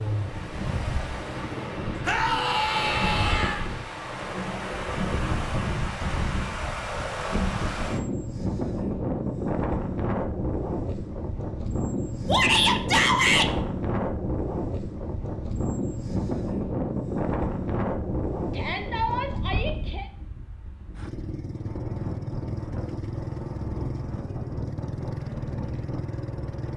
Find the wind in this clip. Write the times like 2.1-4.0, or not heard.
0.0-26.7.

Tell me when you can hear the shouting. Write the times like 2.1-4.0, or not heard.
2.0-3.6, 12.2-13.5, 18.5-20.1.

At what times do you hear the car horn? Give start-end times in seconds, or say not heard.
not heard.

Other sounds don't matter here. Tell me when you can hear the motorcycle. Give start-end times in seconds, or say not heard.
0.0-5.5, 20.9-26.7.